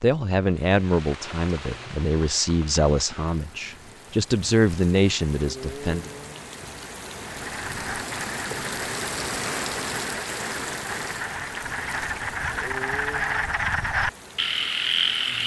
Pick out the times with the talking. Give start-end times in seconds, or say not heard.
0.0-6.1.